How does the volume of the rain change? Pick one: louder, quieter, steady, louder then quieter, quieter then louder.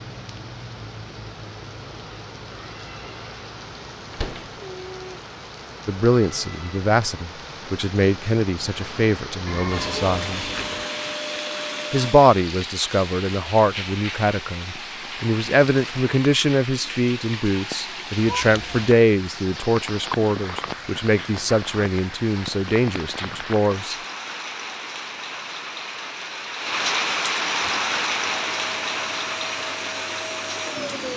louder.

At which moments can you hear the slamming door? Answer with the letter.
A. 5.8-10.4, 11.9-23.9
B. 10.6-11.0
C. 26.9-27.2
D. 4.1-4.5
D.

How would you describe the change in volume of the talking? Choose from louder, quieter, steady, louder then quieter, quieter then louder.
steady.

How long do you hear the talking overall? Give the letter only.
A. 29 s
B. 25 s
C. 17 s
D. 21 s
C.